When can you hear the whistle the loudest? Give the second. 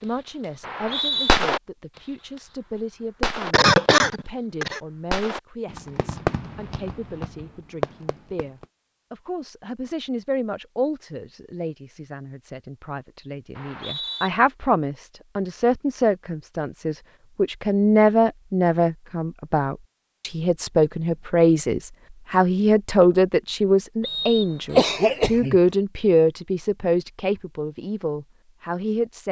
1 s.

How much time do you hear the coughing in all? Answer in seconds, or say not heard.
2 s.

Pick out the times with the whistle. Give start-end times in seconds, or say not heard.
0.6-1.4, 13.6-14.3, 24.0-24.9.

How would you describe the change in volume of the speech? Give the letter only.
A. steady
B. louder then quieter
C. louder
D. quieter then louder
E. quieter
C.